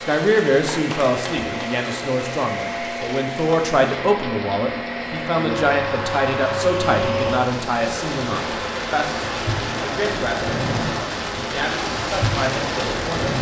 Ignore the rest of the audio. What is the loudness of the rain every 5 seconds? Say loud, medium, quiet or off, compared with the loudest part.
medium, medium, loud.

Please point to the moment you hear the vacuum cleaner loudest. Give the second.
7 s.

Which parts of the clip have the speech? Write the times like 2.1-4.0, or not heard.
0.0-13.1.